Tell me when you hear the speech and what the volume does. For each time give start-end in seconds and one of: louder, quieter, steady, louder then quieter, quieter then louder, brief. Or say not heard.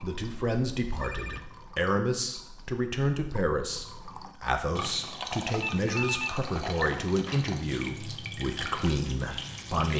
0.0-9.9 steady.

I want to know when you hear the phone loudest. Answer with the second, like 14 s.
6 s.